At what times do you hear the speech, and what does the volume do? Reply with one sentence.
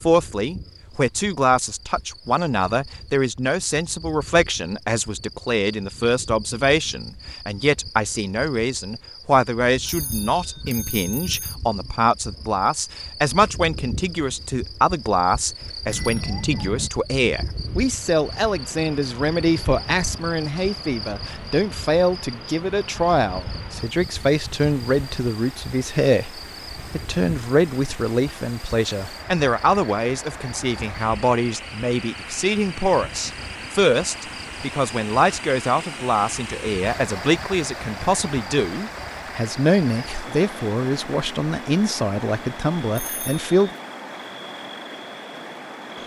You can hear the speech from 0.0 to 43.8 s, at a steady volume.